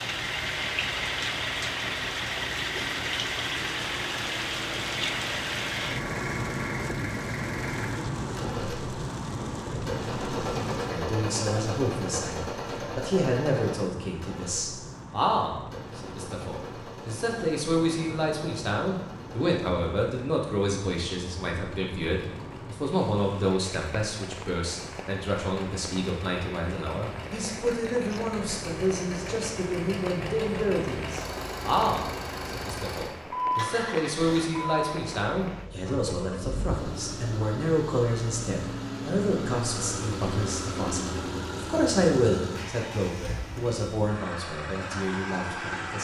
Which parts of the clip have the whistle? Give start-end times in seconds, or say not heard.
not heard.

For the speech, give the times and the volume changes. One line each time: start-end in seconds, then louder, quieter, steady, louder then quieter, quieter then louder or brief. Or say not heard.
10.8-45.9 steady.